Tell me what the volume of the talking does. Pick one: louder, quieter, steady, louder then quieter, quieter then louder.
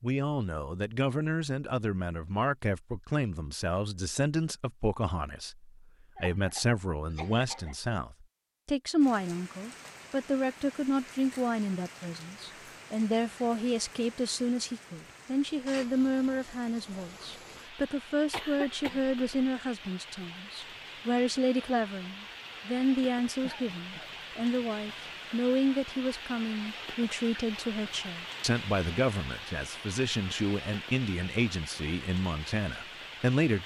steady.